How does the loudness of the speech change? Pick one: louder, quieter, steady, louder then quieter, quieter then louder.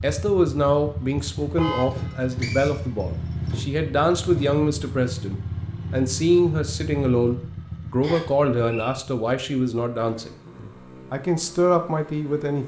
steady.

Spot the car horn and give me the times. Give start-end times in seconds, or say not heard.
1.6-2.4.